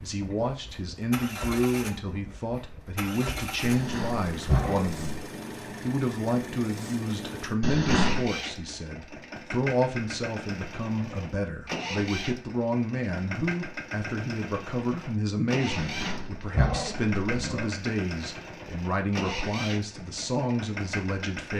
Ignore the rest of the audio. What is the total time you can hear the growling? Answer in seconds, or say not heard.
4 s.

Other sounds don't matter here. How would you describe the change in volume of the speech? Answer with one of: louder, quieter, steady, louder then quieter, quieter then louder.
steady.